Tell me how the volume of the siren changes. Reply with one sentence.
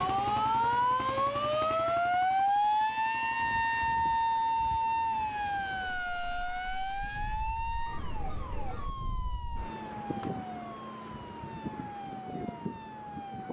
The loudness of the siren goes down.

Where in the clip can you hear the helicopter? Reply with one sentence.
The helicopter can't be heard in this clip.